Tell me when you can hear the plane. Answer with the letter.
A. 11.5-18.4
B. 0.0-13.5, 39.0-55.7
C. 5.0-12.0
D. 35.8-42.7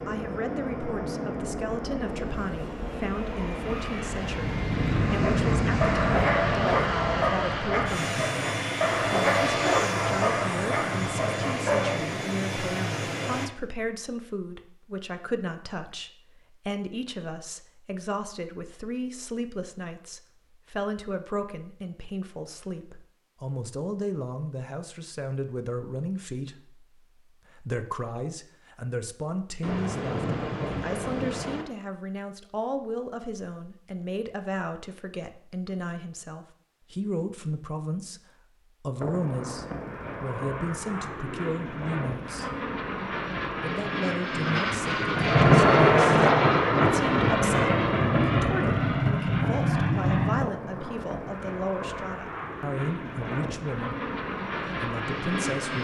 B.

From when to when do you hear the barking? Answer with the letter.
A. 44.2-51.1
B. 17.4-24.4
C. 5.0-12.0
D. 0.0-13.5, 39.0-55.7
C.